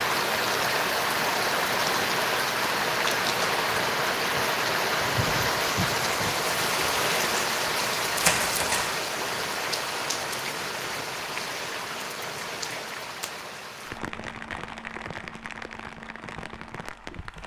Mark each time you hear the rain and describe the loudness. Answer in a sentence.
You can hear the rain from 0.0 to 17.4 s, getting quieter.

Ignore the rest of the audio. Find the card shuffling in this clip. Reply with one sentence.
The card shuffling can be heard from 8.2 to 8.9 s.